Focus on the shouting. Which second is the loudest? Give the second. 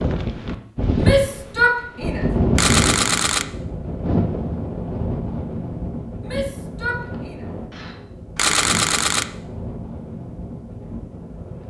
2 s.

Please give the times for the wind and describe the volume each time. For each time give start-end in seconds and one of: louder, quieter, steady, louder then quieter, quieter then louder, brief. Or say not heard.
0.0-11.6 quieter.